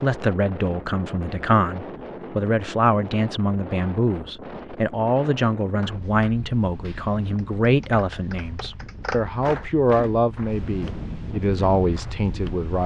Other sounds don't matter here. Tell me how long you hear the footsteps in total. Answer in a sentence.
The footsteps can't be heard in this clip.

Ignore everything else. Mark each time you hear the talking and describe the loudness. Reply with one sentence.
You can hear the talking from 0.0 to 12.8 s, at a steady volume.